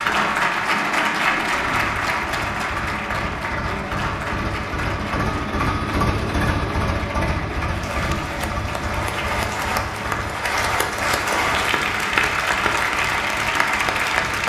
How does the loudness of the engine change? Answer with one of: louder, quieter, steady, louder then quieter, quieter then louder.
louder then quieter.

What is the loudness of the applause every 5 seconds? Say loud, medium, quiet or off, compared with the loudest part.
loud, medium, loud.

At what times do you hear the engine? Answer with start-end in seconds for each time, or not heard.
0.0-14.4.